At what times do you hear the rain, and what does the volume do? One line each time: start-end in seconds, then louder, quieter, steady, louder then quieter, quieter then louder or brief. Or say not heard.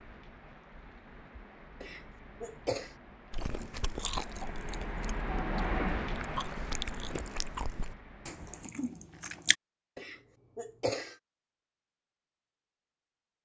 0.0-8.7 louder then quieter.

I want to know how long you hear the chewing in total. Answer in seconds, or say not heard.
6 s.